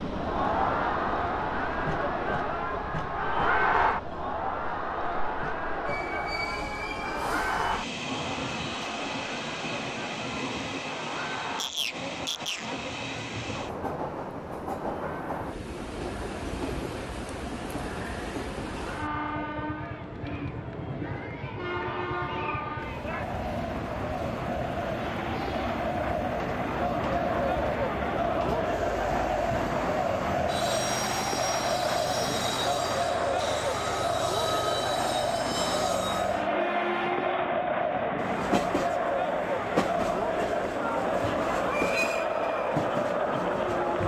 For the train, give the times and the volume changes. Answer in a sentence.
You can hear the train from 0.0 to 44.0 s, at a steady volume.